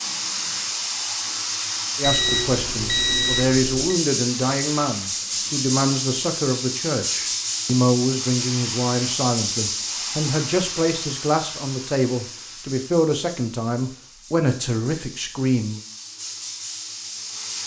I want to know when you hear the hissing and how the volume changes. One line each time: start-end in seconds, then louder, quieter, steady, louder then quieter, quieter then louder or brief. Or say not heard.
0.0-17.6 quieter.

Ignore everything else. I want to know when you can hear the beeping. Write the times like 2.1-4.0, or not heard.
2.0-4.0.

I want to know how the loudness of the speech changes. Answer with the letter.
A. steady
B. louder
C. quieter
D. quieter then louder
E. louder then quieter
A.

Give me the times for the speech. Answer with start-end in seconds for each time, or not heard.
1.9-15.8.